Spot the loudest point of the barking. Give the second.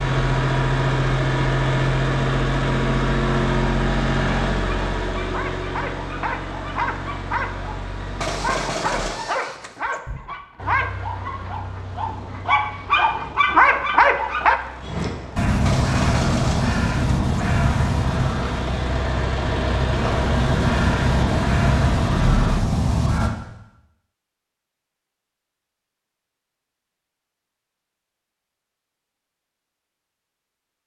14 s.